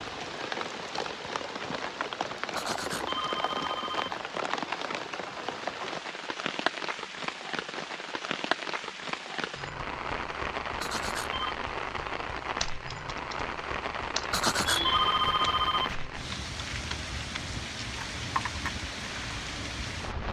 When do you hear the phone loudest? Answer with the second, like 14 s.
15 s.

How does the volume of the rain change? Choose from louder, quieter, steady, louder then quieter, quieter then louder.
steady.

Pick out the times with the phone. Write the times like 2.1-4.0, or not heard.
2.5-4.2, 10.8-11.6, 14.3-15.9.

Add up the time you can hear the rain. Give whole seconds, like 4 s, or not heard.
20 s.